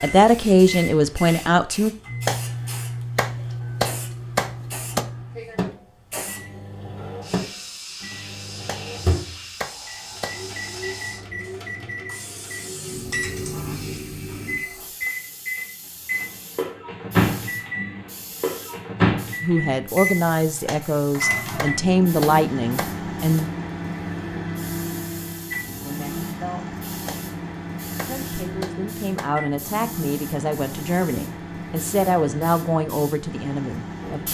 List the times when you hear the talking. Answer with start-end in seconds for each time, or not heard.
0.0-1.9, 19.4-23.5, 25.8-26.8, 27.9-34.2.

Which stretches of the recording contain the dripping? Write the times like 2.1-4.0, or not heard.
not heard.